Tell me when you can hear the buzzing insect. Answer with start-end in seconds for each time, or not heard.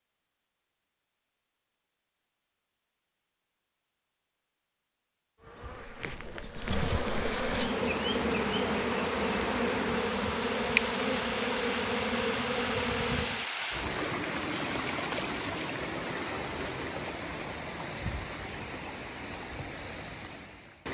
5.4-13.5.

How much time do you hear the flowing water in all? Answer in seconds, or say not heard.
13 s.